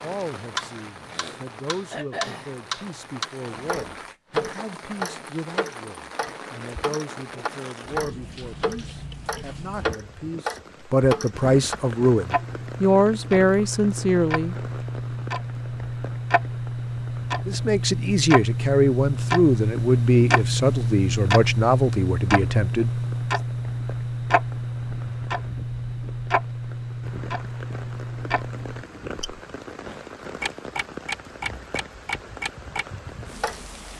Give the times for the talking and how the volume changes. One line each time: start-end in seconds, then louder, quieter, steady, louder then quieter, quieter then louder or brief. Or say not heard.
0.0-14.6 louder
17.4-22.9 steady.